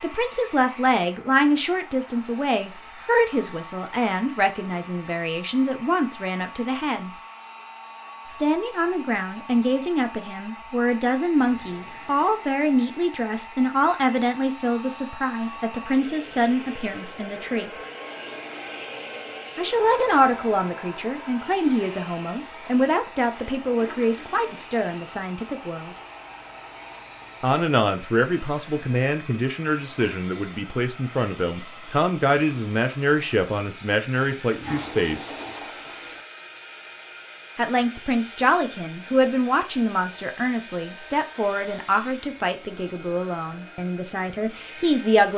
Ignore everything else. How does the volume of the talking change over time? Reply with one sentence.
The loudness of the talking stays about the same.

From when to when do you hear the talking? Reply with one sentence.
You can hear the talking from 0.0 to 7.1 s, from 8.2 to 17.7 s, from 19.6 to 25.9 s, from 27.4 to 35.3 s and from 37.5 to 45.3 s.